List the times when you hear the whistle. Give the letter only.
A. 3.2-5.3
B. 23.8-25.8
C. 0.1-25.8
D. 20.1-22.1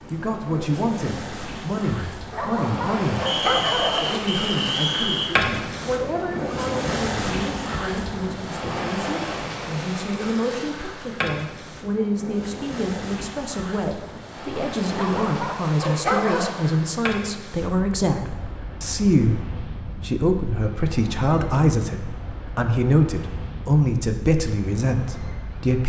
A.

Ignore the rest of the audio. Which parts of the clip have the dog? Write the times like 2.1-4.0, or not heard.
2.3-4.2, 14.9-16.5.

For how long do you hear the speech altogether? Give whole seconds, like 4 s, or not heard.
26 s.